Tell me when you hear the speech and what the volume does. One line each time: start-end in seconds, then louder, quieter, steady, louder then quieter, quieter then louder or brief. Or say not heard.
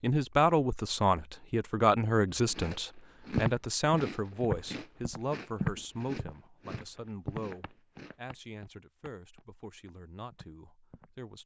0.0-11.4 quieter.